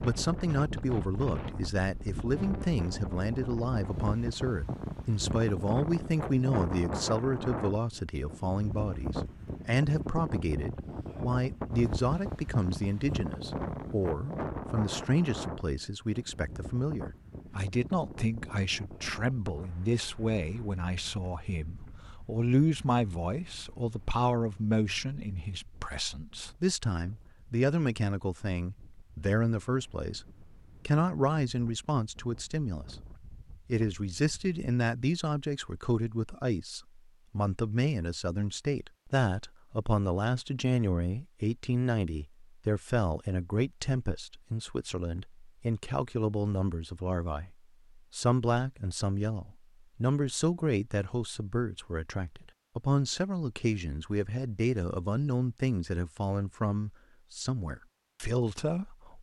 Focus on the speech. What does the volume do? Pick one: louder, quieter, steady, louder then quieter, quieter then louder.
steady.